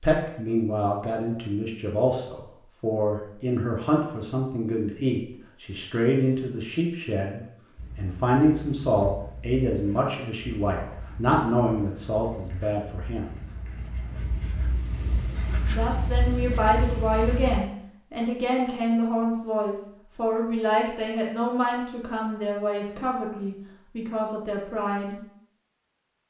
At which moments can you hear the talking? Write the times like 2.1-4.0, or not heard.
0.0-13.4, 15.7-25.1.